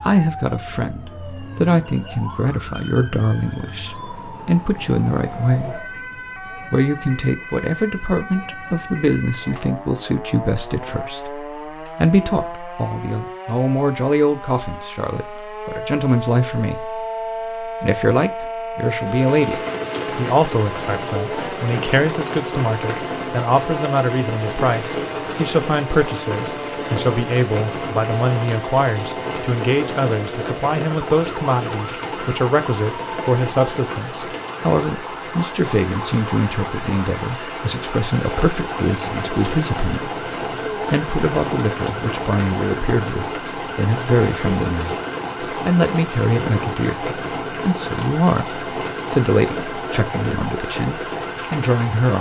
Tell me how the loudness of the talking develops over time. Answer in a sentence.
The volume of the talking stays about the same.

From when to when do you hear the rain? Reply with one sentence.
You can hear the rain from 18.9 to 52.1 s.